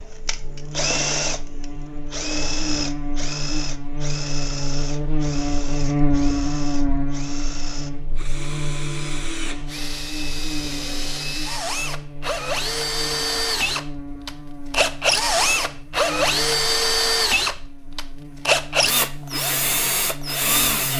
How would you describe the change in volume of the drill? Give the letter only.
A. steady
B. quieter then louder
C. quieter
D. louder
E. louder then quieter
B.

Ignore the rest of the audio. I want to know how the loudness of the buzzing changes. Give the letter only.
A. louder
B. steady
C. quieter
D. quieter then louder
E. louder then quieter
E.